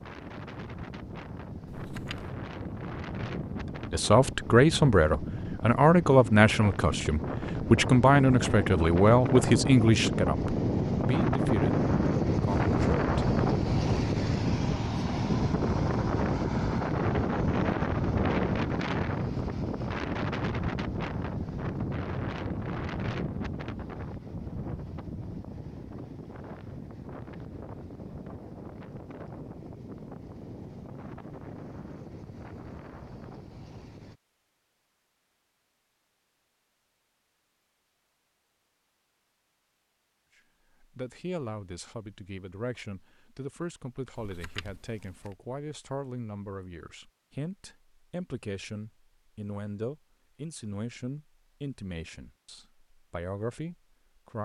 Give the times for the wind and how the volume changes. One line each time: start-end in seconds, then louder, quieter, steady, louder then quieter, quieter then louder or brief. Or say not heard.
0.0-34.2 louder then quieter.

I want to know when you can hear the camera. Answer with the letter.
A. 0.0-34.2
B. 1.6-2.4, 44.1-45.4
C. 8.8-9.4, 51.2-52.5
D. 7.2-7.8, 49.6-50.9
B.